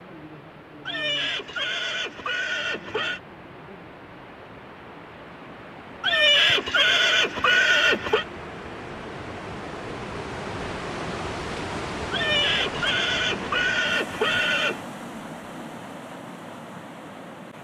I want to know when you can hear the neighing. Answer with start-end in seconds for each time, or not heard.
0.8-3.2, 6.0-8.2, 12.1-14.8.